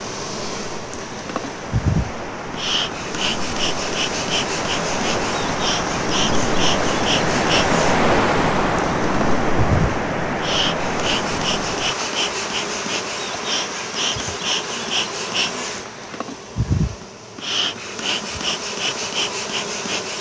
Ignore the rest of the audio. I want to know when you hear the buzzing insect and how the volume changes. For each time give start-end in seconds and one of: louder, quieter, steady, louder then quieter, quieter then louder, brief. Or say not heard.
0.0-20.1 steady.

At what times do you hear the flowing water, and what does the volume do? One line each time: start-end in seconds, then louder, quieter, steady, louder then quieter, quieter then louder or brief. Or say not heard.
0.2-16.2 louder then quieter.